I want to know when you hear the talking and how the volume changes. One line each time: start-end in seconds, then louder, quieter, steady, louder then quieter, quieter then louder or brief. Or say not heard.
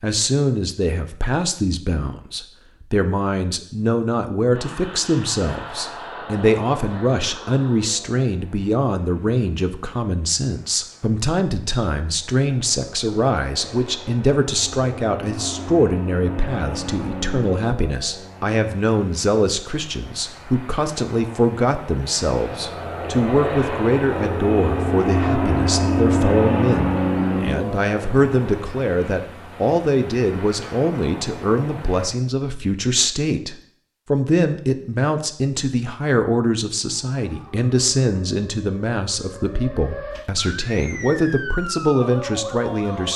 0.0-43.1 steady.